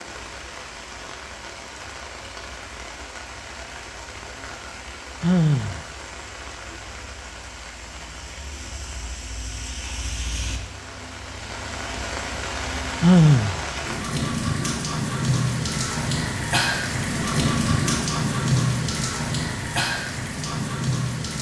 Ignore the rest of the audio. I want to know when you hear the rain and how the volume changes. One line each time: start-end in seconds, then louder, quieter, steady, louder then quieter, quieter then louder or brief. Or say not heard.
0.0-21.3 louder.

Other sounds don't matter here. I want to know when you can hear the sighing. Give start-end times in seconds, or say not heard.
5.2-5.8, 13.0-13.6.